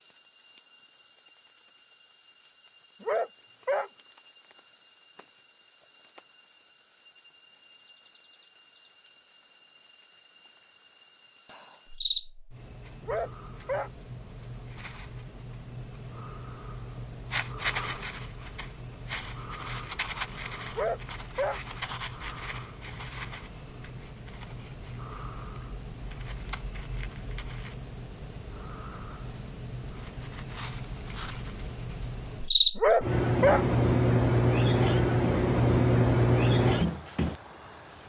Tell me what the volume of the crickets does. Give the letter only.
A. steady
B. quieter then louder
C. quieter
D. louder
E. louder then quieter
D.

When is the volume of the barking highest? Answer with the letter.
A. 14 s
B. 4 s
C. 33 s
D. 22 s
C.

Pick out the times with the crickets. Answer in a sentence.
The crickets can be heard from 0.0 to 38.0 s.